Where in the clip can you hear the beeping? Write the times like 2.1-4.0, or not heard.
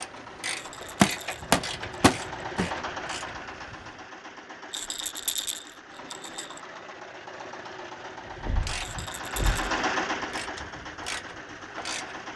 not heard.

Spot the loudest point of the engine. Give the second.
10 s.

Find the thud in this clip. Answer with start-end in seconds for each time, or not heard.
1.0-2.6, 8.4-9.7.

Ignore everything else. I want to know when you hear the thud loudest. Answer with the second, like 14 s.
1 s.